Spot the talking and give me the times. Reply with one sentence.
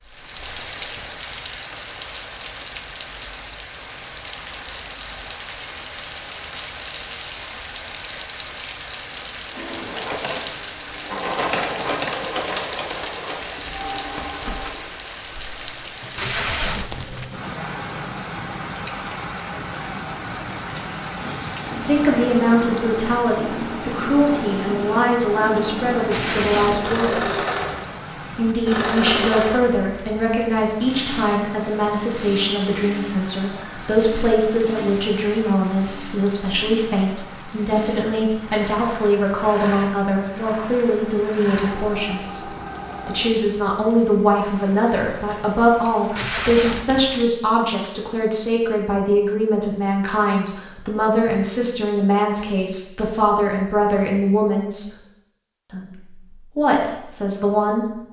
The talking can be heard from 21.8 to 27.4 s, from 28.3 to 54.9 s and from 55.7 to 58.0 s.